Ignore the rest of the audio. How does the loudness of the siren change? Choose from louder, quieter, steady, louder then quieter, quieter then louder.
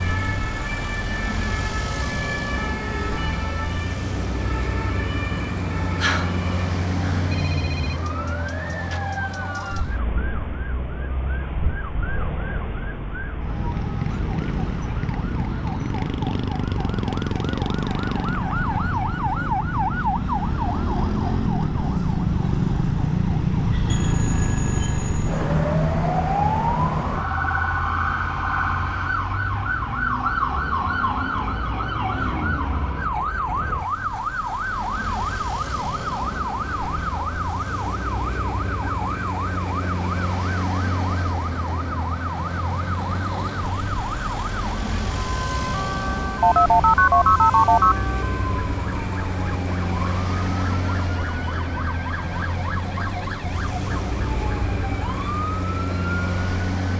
louder then quieter.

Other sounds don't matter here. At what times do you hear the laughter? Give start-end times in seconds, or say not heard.
not heard.